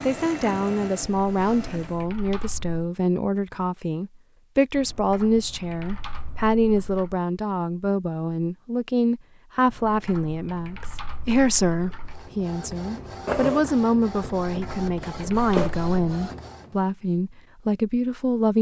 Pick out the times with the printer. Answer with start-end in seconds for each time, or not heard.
0.0-2.0, 12.1-16.8.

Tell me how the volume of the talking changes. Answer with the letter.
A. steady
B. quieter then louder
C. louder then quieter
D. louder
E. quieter
A.